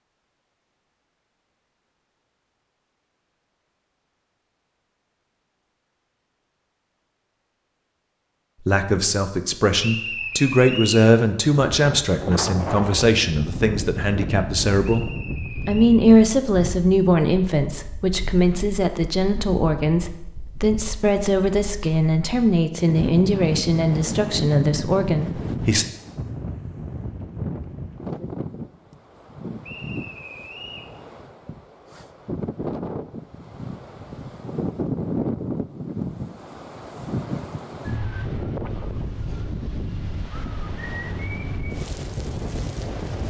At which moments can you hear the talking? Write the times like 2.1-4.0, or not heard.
8.7-15.1, 15.7-25.9.